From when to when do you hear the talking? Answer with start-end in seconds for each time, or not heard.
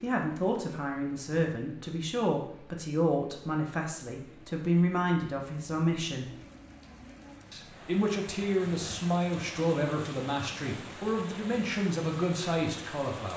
0.0-6.3, 7.5-13.3.